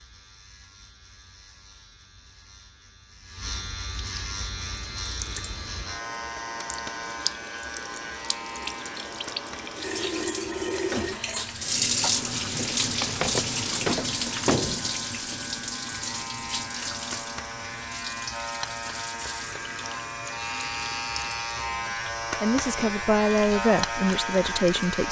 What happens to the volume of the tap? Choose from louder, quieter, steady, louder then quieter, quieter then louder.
louder then quieter.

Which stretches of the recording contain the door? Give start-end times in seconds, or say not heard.
12.6-14.9.